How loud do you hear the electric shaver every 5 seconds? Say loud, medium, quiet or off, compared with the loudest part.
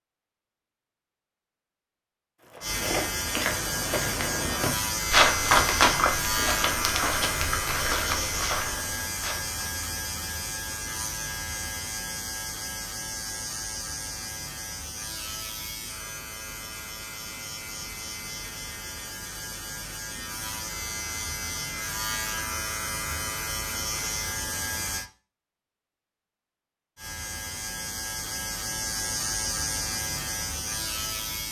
loud, loud, medium, medium, loud, loud, loud.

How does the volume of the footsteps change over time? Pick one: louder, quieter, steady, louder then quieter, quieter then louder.
louder then quieter.